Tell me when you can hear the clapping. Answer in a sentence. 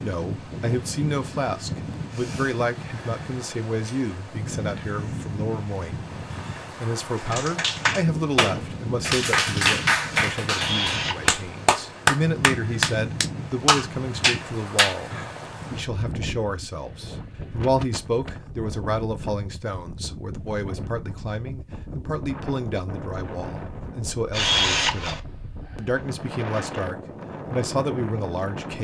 The clapping can be heard from 7.2 to 14.9 s.